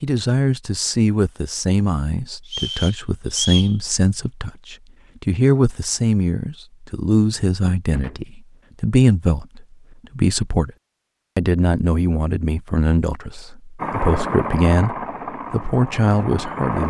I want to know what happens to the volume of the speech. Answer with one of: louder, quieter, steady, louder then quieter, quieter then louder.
steady.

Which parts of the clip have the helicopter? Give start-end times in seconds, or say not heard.
13.8-16.8.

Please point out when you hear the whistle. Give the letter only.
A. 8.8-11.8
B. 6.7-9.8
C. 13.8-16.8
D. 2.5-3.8
D.